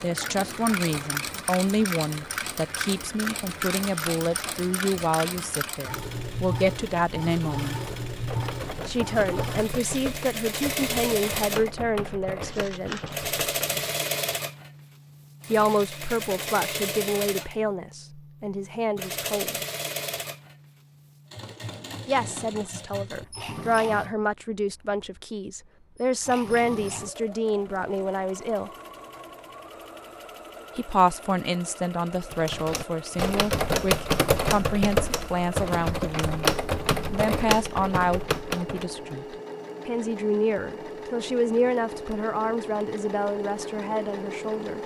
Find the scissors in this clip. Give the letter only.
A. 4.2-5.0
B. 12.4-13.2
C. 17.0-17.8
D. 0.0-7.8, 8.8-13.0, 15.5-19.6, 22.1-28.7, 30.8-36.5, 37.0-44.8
B.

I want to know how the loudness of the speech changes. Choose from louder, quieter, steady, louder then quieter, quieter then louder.
steady.